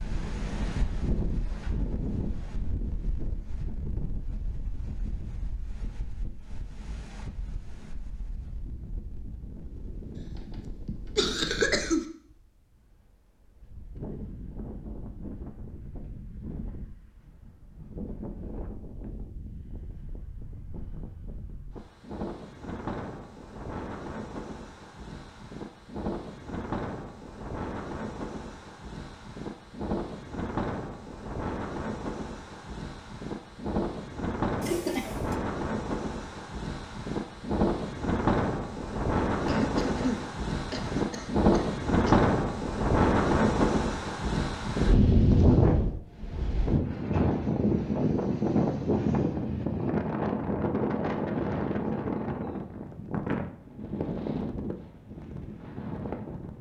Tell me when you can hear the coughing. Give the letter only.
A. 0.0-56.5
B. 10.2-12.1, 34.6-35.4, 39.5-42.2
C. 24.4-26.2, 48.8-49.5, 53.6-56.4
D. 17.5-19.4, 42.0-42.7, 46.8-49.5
B.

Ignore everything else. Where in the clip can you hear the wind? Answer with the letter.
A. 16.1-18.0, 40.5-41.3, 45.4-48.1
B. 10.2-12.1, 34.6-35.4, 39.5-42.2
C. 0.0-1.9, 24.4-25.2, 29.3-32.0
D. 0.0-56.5
D.